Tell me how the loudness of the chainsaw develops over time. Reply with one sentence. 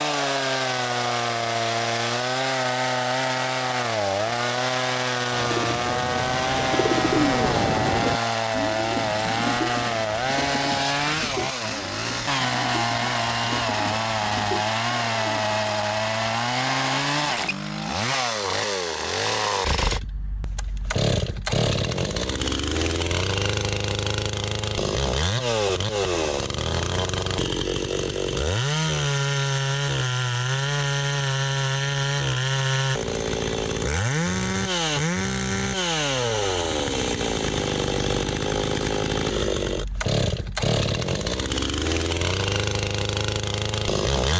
The volume of the chainsaw stays about the same.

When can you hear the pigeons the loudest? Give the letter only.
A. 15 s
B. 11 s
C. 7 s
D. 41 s
C.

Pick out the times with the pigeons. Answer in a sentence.
The pigeons can be heard from 5.3 to 15.8 s.